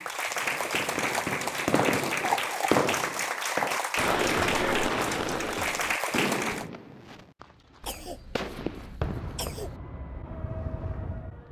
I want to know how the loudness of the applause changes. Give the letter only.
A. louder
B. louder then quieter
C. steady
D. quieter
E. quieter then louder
C.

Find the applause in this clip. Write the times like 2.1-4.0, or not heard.
0.0-6.7.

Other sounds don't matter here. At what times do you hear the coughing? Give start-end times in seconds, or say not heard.
2.2-2.8, 7.8-9.8.